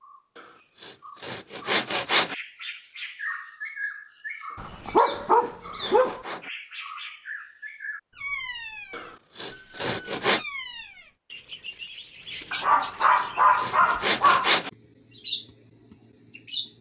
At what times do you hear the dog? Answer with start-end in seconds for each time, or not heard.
4.5-6.2, 12.5-14.5.